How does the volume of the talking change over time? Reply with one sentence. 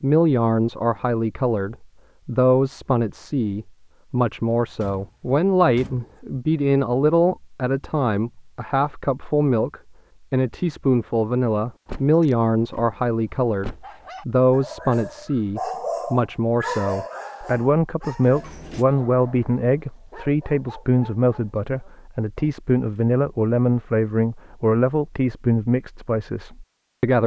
The volume of the talking stays about the same.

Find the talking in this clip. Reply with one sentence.
The talking can be heard from 0.0 to 27.2 s.